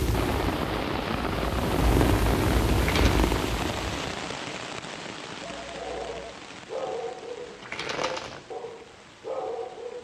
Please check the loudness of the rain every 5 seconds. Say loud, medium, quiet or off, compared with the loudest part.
loud, quiet.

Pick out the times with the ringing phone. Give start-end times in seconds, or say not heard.
5.4-6.4.